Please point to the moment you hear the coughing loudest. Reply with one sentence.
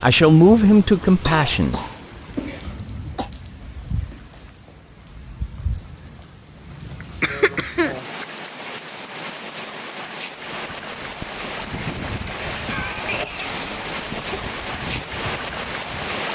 The volume of the coughing peaks at 7 seconds.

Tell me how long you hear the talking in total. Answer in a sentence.
You can hear the talking for 2 seconds altogether.